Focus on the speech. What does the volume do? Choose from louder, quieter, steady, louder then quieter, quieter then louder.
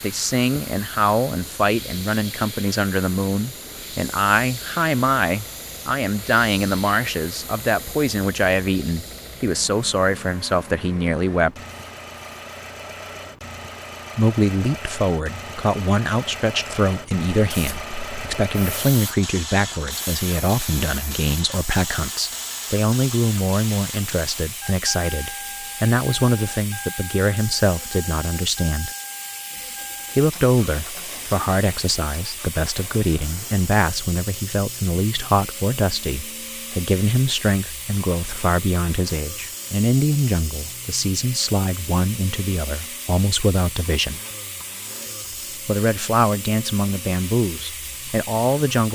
steady.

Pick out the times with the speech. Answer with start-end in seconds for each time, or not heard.
0.0-11.6, 14.2-28.9, 30.1-44.2, 45.6-48.9.